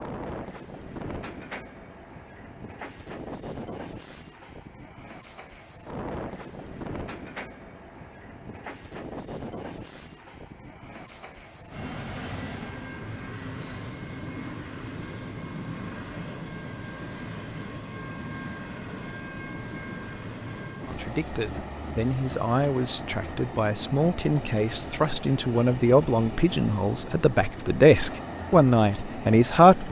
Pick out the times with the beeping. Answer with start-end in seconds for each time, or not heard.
not heard.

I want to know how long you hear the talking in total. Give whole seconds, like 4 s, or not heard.
9 s.